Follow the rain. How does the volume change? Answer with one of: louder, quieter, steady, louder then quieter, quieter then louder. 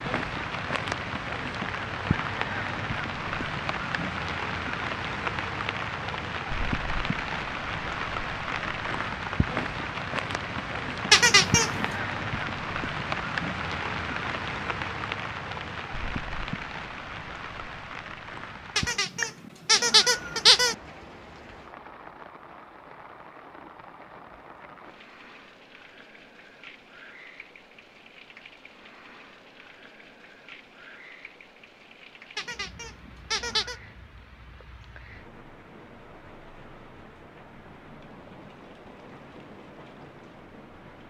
quieter.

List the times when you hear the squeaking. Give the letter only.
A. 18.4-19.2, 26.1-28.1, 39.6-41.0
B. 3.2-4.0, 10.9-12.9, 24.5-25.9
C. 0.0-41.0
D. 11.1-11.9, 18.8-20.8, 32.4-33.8
D.